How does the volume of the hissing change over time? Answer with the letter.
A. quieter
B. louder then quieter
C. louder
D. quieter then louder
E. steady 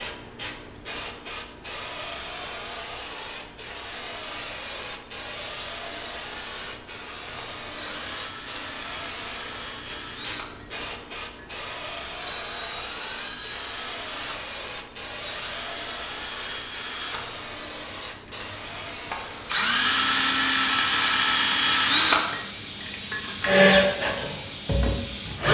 E.